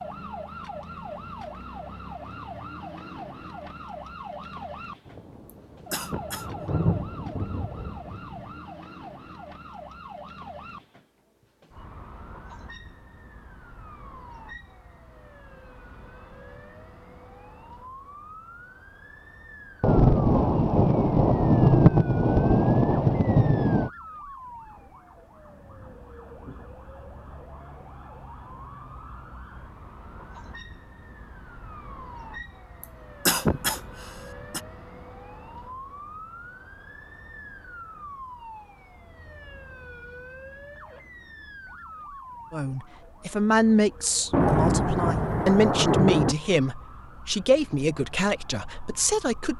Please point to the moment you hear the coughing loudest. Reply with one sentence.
The loudest moment of the coughing is at 33 seconds.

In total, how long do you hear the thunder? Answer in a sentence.
The thunder can be heard for 10 seconds in total.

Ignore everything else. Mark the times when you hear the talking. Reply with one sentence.
You can hear the talking from 42.5 to 49.5 s.